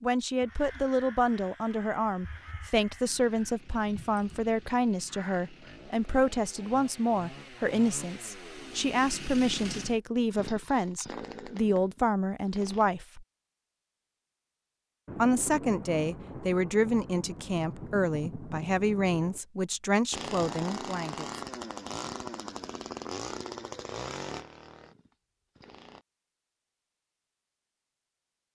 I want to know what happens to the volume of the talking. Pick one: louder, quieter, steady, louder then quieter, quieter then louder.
steady.